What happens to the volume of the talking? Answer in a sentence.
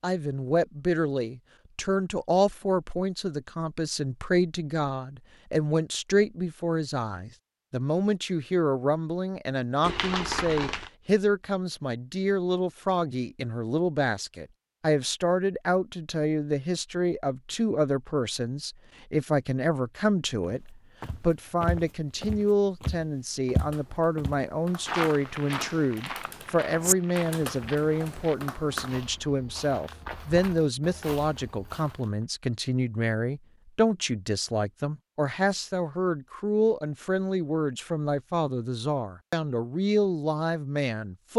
The volume of the talking stays about the same.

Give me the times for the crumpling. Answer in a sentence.
The crumpling can be heard from 9.8 to 10.9 s.